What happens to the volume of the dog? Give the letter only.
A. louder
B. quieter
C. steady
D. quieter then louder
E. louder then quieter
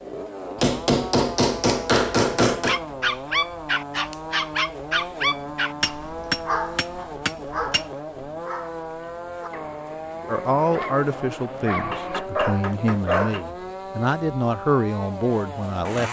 D.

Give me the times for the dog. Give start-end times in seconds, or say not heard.
2.6-13.4.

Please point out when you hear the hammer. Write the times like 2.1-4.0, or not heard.
0.6-2.8, 5.8-7.8, 11.9-13.4.